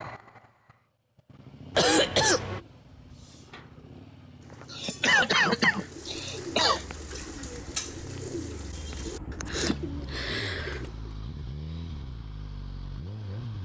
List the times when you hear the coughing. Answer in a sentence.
The coughing can be heard from 1.8 to 2.6 s, from 4.7 to 6.8 s and from 9.3 to 10.8 s.